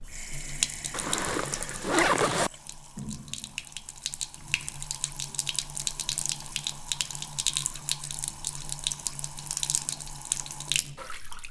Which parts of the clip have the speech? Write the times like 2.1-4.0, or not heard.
not heard.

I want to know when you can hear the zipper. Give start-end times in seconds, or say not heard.
0.9-2.5.